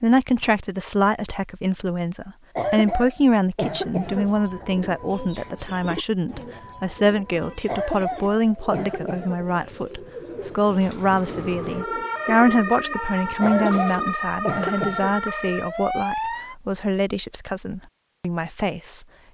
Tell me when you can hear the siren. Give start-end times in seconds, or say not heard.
7.3-16.6.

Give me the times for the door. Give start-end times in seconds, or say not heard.
not heard.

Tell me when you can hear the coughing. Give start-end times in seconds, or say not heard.
2.5-4.3, 7.7-9.4, 13.4-15.2.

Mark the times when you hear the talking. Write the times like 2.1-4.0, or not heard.
0.0-19.1.